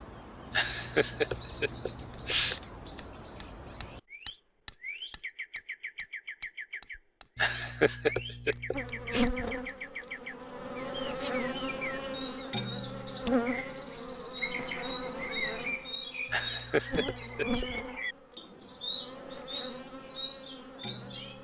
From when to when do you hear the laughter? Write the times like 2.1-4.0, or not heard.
0.5-2.5, 7.3-9.2, 16.2-17.6.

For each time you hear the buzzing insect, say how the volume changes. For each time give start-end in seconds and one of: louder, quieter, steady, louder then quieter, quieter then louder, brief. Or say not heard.
8.7-21.3 quieter.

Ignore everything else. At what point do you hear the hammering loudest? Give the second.
5 s.